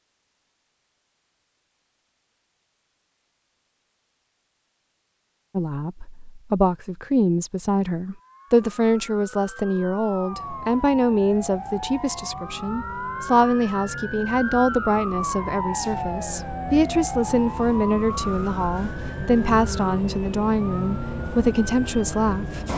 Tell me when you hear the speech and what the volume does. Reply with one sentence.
You can hear the speech from 5.5 to 22.7 s, at a steady volume.